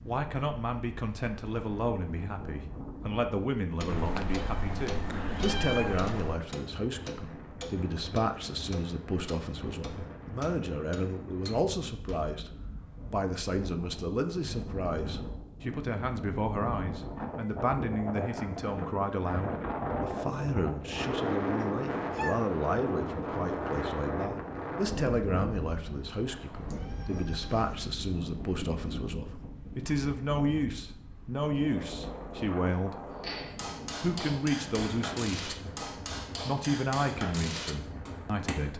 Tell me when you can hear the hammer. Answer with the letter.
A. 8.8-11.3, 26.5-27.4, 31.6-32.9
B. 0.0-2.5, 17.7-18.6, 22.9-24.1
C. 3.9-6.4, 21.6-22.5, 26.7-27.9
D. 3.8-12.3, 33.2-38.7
D.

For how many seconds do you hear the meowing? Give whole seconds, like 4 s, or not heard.
5 s.